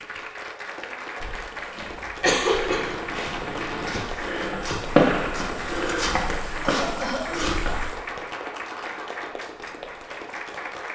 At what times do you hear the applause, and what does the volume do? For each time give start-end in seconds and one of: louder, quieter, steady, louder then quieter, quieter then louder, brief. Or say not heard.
0.0-10.9 steady.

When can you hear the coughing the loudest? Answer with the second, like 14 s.
2 s.